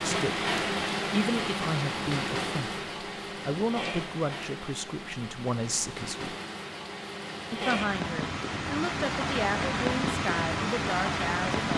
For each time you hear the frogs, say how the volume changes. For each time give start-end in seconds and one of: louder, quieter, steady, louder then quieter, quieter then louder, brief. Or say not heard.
not heard.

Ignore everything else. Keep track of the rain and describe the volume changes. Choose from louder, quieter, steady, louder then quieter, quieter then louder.
quieter then louder.